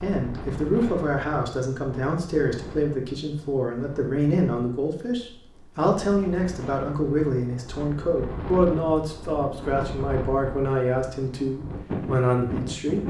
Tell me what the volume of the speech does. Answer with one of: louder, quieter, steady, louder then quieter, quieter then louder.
steady.